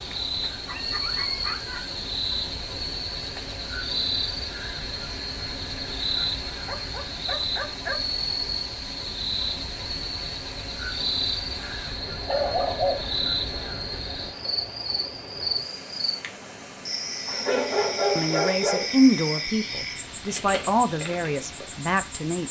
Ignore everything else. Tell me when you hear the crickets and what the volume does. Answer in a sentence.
The crickets can be heard from 0.0 to 22.4 s, at a steady volume.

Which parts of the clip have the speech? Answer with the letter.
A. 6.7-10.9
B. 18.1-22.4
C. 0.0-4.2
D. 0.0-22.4
B.